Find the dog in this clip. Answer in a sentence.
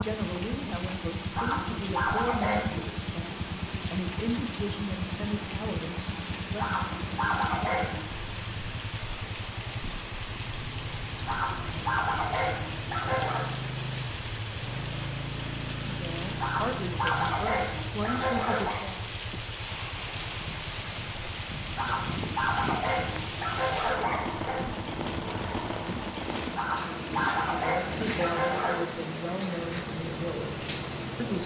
You can hear the dog from 1.4 to 2.9 s, from 6.5 to 8.2 s, from 11.2 to 13.5 s, from 16.4 to 18.9 s, from 21.8 to 24.6 s and from 26.6 to 28.8 s.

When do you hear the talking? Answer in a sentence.
The talking can be heard from 0.0 to 6.6 s, from 15.9 to 19.1 s and from 27.5 to 31.4 s.